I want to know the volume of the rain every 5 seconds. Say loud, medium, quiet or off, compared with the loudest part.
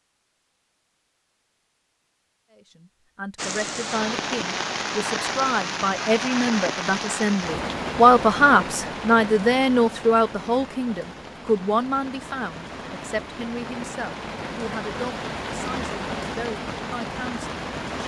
loud, loud, medium, loud.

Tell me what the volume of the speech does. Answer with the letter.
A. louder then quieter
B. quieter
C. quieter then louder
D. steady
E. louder
A.